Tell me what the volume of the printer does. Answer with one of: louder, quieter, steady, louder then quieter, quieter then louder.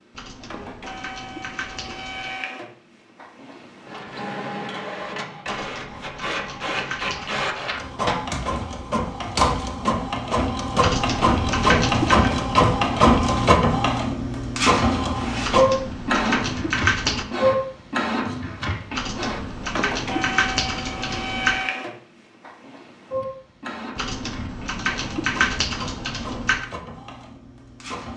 louder then quieter.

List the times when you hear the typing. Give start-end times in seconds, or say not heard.
0.1-2.4, 5.5-7.5, 10.8-12.3, 15.4-17.2, 18.9-21.6, 23.9-26.6.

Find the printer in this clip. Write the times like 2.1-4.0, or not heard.
0.0-28.1.